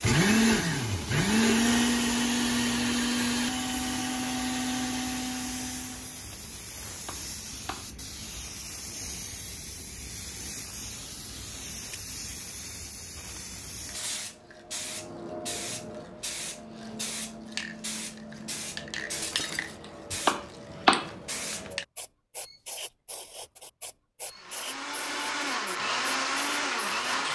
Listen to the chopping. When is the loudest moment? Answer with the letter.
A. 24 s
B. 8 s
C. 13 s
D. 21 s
D.